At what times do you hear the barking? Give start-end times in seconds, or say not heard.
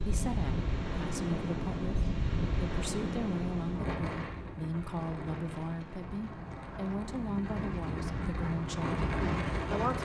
not heard.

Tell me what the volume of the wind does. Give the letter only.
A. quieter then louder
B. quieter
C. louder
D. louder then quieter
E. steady
A.